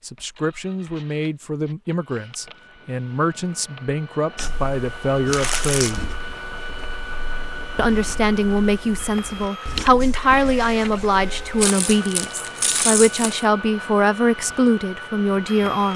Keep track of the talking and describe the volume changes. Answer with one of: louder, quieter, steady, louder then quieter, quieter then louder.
louder.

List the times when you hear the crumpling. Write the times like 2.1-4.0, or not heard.
5.3-6.0, 11.6-13.4.